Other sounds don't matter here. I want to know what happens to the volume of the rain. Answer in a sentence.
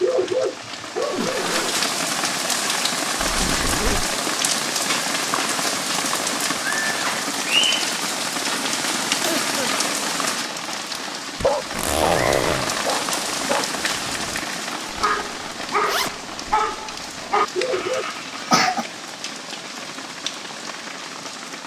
The loudness of the rain goes down.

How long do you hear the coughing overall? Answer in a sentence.
You can hear the coughing for 2 seconds altogether.